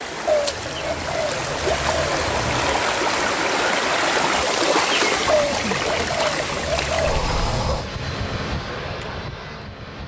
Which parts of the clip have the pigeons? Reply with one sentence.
You can hear the pigeons from 0.2 to 2.8 s and from 5.2 to 7.7 s.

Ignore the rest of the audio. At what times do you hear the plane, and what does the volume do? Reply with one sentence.
The plane can be heard from 0.0 to 4.4 s, getting louder; and briefly from 7.0 to 10.0 s.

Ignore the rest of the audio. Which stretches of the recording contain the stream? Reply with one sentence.
You can hear the stream from 0.0 to 7.9 s.